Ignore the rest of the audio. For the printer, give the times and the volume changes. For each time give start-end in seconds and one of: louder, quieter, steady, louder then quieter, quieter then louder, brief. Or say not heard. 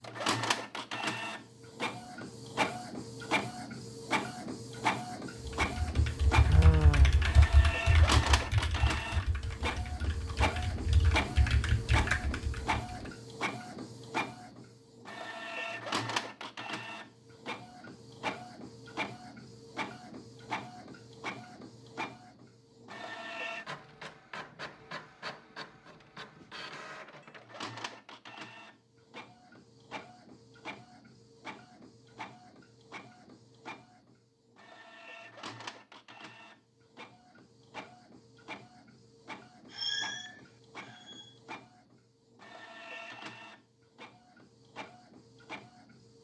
0.0-46.1 quieter.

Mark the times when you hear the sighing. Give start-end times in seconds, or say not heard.
6.5-7.3, 39.7-41.3.